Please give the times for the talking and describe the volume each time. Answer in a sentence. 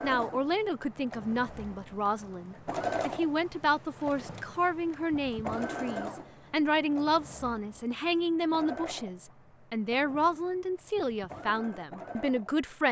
The talking can be heard from 0.0 to 12.8 s, at a steady volume.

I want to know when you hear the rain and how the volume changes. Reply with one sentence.
The rain can't be heard in this clip.